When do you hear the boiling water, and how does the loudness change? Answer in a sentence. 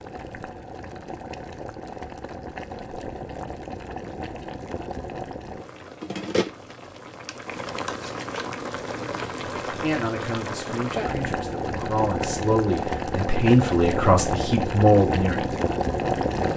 You can hear the boiling water from 0.0 to 16.5 s, getting louder.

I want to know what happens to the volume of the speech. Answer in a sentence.
The loudness of the speech goes up.